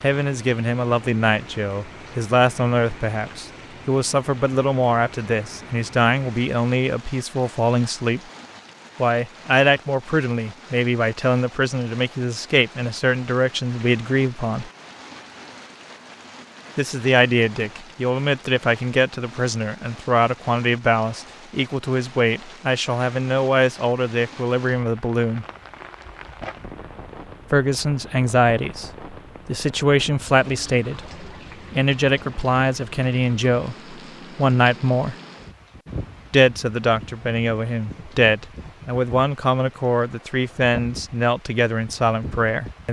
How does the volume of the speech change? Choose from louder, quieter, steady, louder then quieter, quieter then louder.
steady.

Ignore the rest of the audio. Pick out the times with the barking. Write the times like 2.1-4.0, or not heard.
not heard.